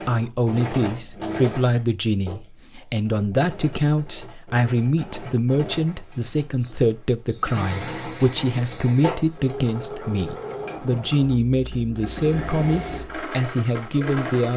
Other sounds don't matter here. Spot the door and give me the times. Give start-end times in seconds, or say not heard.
not heard.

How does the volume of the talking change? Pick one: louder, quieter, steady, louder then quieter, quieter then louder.
steady.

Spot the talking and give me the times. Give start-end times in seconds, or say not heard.
0.1-14.5.